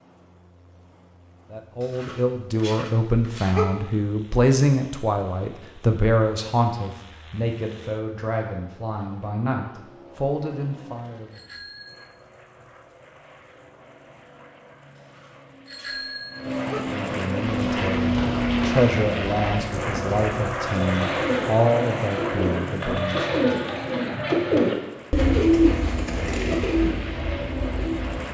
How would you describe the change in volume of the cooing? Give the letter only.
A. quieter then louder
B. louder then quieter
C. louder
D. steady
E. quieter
B.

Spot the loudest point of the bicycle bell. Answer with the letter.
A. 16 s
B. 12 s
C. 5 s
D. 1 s
A.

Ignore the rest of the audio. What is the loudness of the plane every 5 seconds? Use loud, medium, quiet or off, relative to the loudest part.
quiet, quiet, quiet, loud, loud, medium.